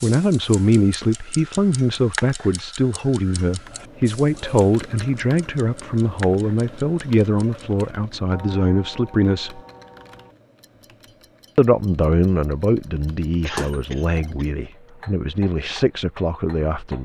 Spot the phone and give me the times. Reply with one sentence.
The phone can be heard from 13.6 to 14.3 s.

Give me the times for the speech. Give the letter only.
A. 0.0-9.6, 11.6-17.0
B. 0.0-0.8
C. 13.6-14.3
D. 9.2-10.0
A.